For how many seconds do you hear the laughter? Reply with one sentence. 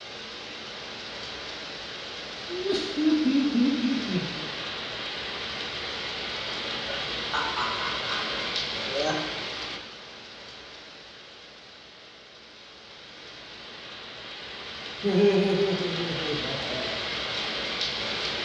The laughter can be heard for 6 seconds in total.